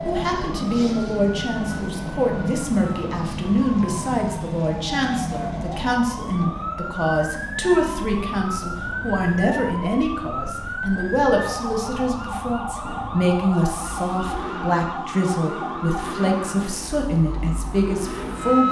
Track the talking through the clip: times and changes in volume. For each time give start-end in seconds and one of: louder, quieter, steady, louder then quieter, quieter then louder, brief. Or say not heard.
0.0-18.6 steady.